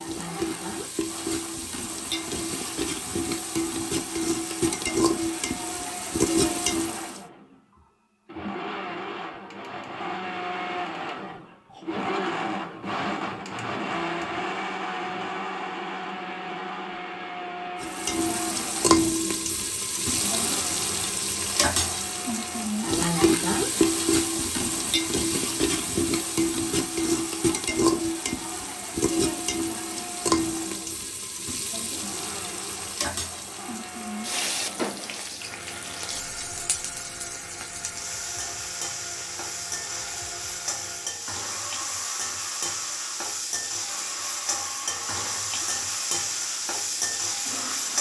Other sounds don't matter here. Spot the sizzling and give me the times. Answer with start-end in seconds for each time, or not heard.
0.0-7.2, 17.8-47.9.